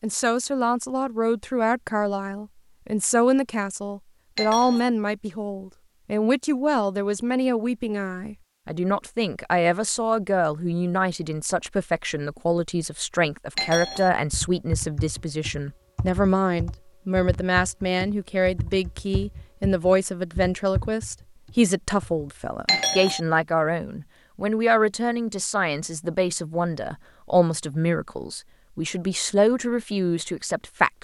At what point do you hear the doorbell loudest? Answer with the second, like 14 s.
23 s.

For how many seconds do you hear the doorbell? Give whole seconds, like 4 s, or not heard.
2 s.